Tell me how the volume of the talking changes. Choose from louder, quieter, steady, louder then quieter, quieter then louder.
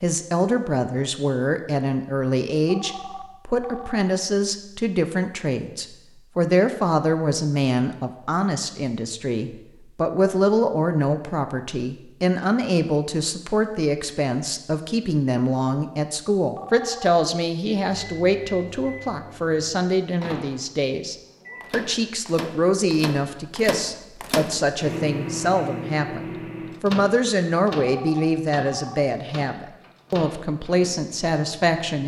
steady.